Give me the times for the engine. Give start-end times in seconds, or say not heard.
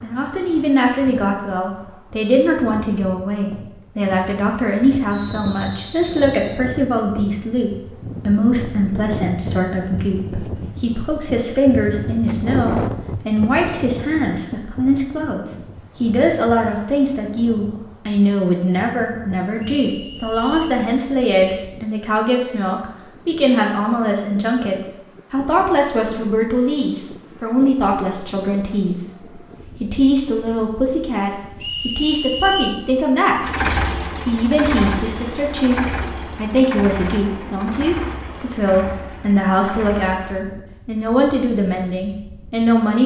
33.4-40.4.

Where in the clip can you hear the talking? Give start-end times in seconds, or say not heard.
0.0-33.5, 34.2-43.0.